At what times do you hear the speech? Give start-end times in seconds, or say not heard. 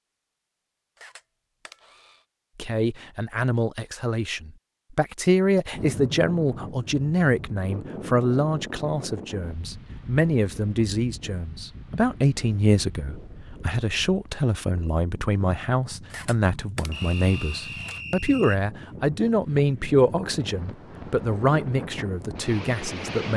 2.5-23.3.